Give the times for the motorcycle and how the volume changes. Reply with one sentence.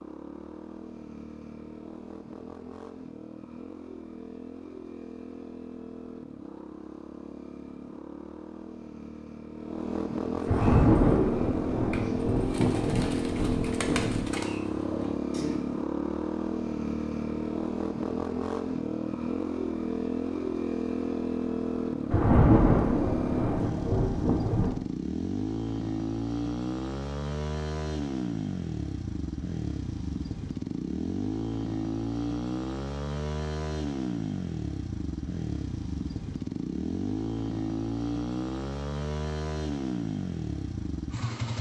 You can hear the motorcycle from 0.0 to 41.5 s, getting louder.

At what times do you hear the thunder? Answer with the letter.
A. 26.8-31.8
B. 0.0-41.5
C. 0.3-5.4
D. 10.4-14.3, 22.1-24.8
D.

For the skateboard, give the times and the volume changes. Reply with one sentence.
The skateboard can't be heard in this clip.